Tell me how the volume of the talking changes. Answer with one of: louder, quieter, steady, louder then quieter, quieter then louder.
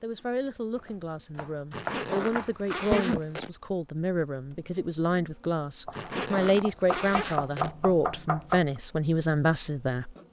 louder.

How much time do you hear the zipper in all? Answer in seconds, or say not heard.
4 s.